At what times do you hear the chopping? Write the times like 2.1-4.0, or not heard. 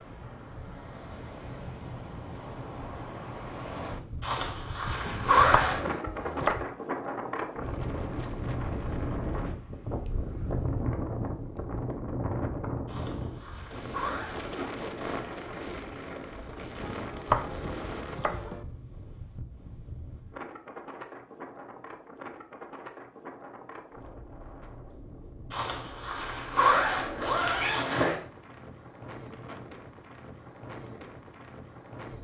5.0-6.7, 16.8-18.6.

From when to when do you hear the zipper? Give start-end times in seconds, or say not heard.
4.2-6.0, 12.8-14.6, 25.5-28.1.